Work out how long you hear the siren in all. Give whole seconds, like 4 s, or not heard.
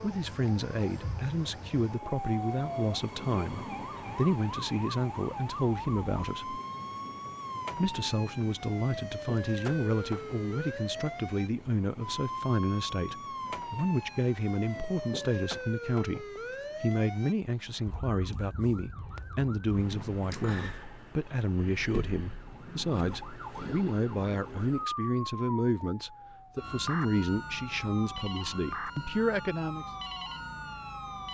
31 s.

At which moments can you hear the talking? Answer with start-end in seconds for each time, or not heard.
0.0-6.6, 7.8-29.9.